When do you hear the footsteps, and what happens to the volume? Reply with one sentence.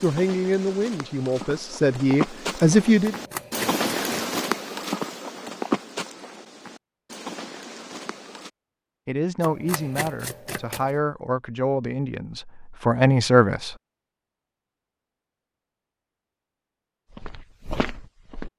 The footsteps can be heard from 0.0 to 8.5 s, getting louder then quieter; and briefly from 17.1 to 18.5 s.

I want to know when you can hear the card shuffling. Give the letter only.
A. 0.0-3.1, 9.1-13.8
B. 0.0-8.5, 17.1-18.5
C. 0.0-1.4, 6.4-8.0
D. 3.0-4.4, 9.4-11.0
D.